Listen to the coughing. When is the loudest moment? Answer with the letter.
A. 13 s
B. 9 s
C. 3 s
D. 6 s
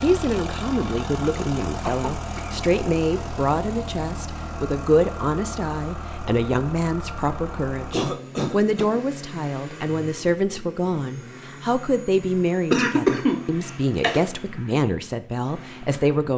A.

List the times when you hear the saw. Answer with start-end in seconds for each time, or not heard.
not heard.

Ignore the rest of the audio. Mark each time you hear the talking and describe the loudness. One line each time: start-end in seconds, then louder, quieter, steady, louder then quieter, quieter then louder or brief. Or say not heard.
0.0-16.3 steady.